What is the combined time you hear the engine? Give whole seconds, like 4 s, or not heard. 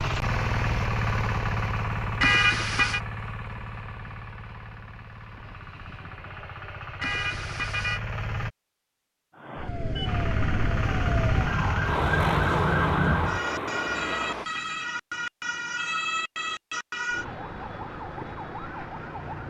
13 s.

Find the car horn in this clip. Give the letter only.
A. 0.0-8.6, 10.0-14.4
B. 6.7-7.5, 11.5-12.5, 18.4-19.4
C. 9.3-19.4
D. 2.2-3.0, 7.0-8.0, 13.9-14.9
D.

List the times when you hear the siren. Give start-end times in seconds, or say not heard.
9.3-19.4.